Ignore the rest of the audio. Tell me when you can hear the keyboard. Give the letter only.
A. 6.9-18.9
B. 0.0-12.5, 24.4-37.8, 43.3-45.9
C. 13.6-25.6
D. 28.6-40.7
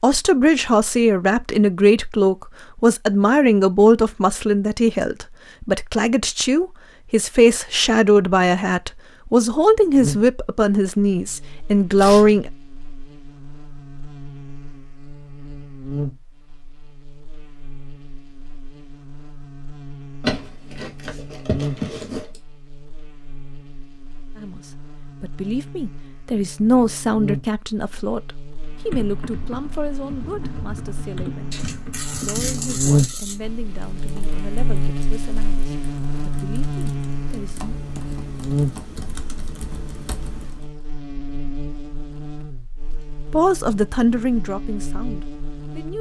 D.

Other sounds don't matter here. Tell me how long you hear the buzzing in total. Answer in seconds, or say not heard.
36 s.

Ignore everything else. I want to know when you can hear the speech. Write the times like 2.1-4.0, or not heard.
0.0-12.5, 24.4-37.8, 43.3-45.9.